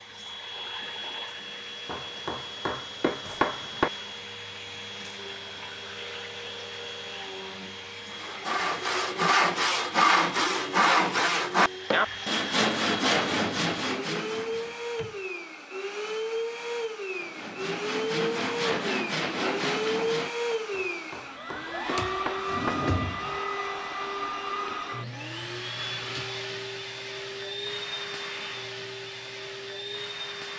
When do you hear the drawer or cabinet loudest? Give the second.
23 s.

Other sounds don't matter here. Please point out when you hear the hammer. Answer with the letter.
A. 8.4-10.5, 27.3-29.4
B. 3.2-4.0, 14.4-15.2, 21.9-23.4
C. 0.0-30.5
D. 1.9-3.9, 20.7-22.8
D.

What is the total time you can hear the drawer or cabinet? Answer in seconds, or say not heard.
3 s.